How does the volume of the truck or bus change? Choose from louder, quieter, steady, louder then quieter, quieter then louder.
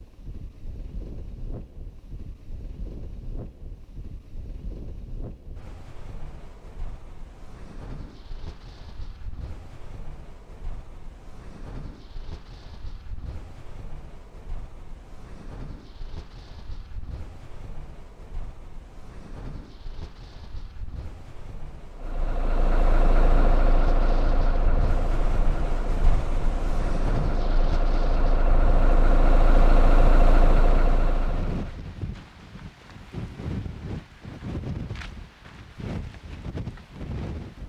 quieter then louder.